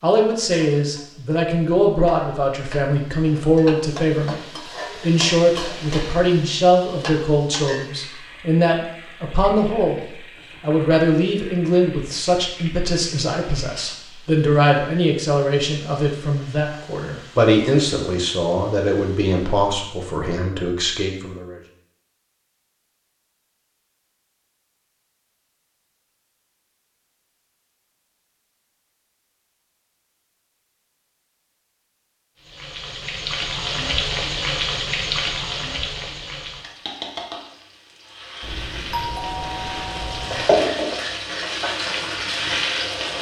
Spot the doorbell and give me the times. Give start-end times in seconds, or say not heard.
38.4-40.5.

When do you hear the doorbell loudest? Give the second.
39 s.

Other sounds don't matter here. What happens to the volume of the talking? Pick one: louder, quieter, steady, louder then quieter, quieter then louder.
steady.